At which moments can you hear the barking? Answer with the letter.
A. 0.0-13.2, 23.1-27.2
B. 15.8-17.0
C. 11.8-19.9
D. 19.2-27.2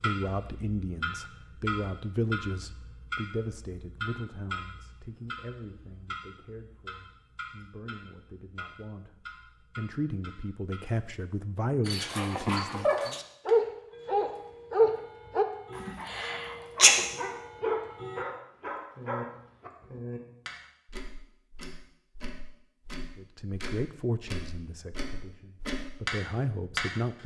C.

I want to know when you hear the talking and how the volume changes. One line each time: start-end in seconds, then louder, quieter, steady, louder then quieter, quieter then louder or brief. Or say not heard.
0.0-13.2 quieter then louder
23.1-27.2 quieter then louder.